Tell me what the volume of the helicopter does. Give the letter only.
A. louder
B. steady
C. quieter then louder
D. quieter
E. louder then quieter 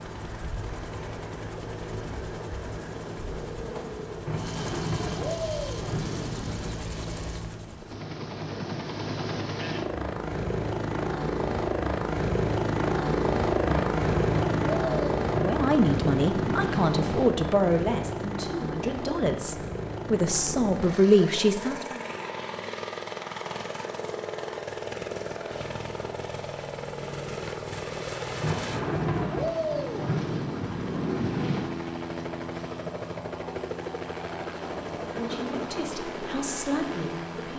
E.